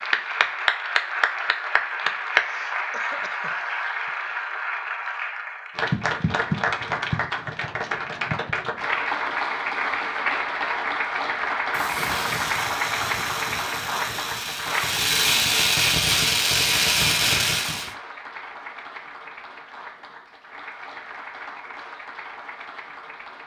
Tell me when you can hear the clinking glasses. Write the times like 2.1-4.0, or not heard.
not heard.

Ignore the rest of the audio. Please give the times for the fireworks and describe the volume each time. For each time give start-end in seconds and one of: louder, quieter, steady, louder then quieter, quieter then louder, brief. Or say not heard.
11.7-17.9 louder.